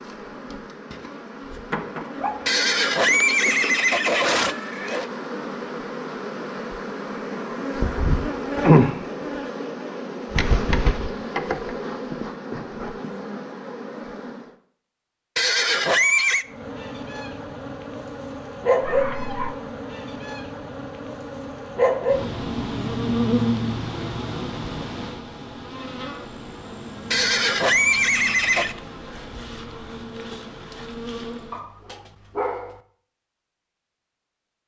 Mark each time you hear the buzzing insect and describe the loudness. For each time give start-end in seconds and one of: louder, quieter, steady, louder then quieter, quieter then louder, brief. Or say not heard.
0.0-14.5 louder then quieter
16.5-31.6 quieter.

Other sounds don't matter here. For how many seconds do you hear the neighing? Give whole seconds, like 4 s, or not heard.
5 s.